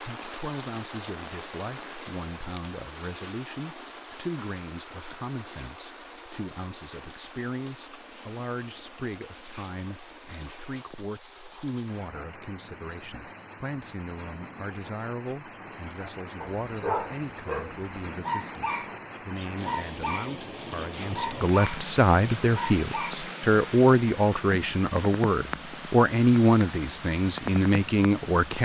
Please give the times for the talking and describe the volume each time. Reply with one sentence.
You can hear the talking from 0.0 to 28.5 s, getting louder.